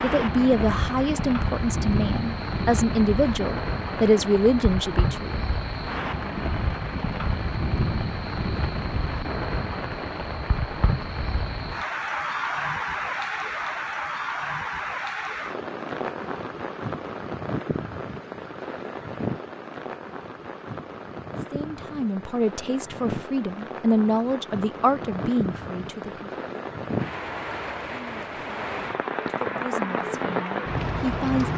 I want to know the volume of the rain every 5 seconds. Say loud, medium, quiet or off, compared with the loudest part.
loud, loud, loud, medium, medium, loud, loud.